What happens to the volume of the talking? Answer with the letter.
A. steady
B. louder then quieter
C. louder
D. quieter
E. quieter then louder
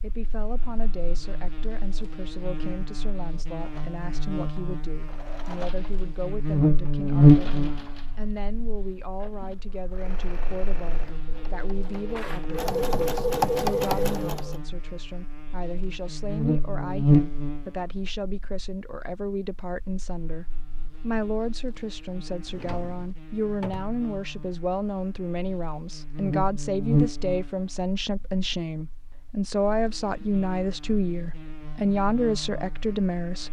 C.